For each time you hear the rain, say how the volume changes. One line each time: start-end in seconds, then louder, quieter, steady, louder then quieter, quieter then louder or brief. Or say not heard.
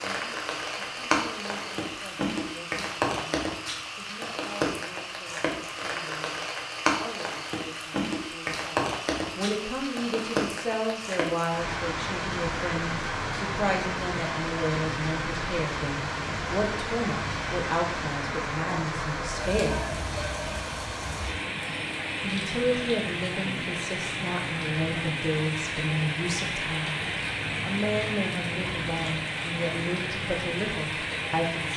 0.0-31.7 steady.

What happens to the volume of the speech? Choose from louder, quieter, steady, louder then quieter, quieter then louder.
louder.